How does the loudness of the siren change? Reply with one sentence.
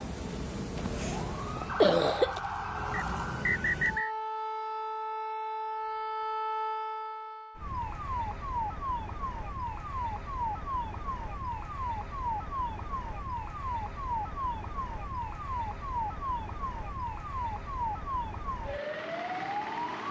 The loudness of the siren stays about the same.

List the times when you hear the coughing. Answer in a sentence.
The coughing can be heard from 0.8 to 2.4 s.